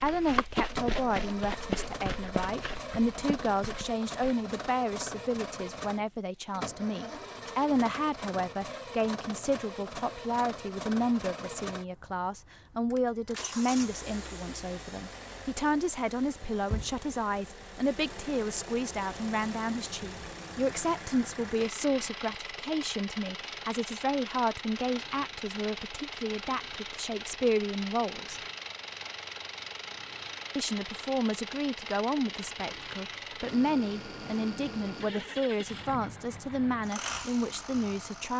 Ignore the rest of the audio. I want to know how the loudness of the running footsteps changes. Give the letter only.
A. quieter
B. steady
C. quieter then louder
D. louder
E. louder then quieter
A.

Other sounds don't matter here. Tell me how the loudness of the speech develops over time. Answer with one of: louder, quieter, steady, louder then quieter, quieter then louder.
steady.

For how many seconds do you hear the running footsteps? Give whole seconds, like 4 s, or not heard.
4 s.